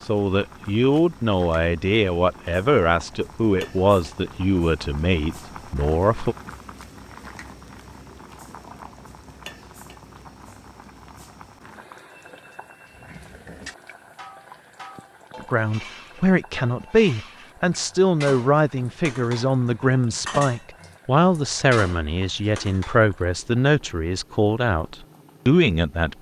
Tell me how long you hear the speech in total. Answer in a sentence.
The speech can be heard for 17 seconds in total.